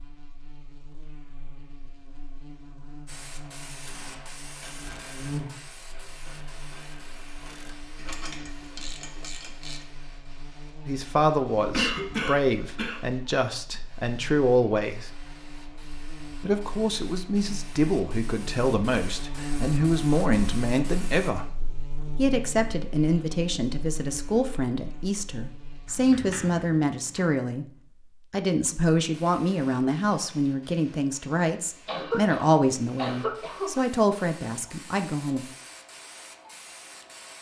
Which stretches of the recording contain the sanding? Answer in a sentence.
You can't hear the sanding here.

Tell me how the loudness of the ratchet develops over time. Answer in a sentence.
The volume of the ratchet goes down, then up.